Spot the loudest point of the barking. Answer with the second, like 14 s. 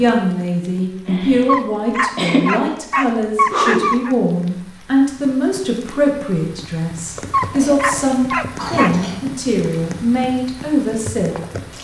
4 s.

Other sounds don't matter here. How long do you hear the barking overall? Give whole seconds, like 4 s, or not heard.
4 s.